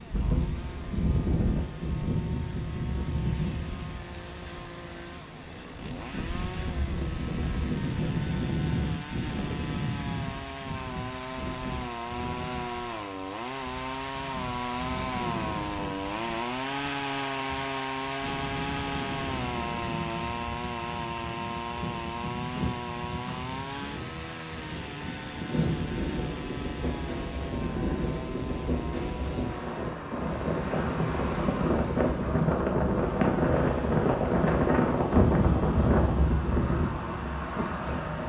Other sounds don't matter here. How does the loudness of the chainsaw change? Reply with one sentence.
The loudness of the chainsaw goes up, then down.